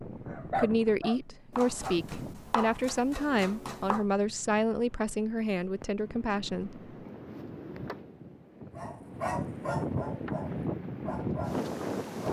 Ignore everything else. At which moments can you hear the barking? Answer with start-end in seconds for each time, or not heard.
0.2-2.0, 8.8-12.2.